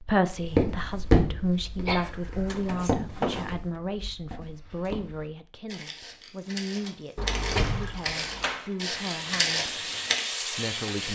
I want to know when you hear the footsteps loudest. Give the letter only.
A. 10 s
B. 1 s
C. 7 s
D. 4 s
B.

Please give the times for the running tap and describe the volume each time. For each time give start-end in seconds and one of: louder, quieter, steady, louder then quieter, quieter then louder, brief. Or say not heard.
6.5-11.1 louder.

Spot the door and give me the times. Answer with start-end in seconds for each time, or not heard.
2.0-3.6, 7.2-8.7.